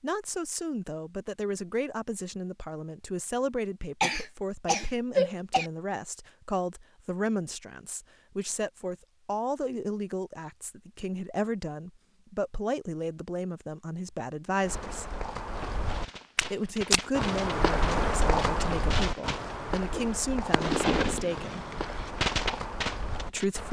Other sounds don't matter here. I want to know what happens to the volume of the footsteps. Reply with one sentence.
The loudness of the footsteps goes up, then down.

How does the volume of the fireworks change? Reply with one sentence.
The loudness of the fireworks goes up.